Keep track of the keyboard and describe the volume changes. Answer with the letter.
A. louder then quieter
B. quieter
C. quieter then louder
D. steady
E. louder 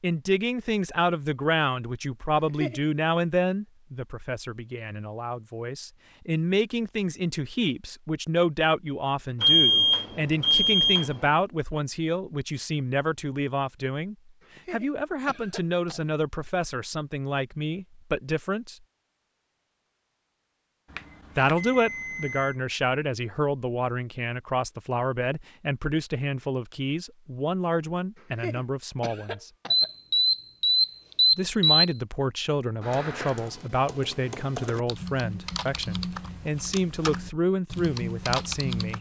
E.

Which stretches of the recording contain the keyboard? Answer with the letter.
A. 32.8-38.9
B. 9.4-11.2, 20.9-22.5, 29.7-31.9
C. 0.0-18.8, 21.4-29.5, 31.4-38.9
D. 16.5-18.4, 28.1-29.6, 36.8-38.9
A.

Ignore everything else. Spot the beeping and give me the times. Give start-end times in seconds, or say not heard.
9.4-11.2, 20.9-22.5, 29.7-31.9.